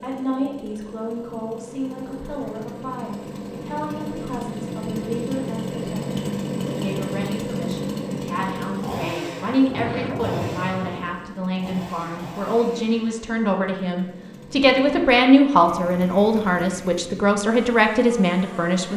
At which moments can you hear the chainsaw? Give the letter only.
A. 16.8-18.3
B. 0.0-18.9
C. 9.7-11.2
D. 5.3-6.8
B.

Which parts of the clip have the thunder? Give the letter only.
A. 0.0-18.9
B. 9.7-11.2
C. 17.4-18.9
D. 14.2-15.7
B.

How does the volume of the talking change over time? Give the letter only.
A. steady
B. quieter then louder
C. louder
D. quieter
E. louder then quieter
C.